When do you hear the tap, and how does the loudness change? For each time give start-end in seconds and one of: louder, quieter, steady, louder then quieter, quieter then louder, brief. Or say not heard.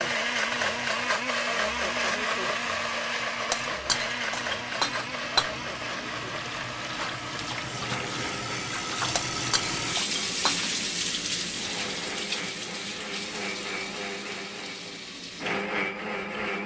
0.0-16.6 louder then quieter.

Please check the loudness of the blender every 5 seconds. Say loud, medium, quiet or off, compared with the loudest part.
loud, medium, medium, loud.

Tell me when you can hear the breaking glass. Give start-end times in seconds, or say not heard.
3.5-5.5, 9.2-10.7.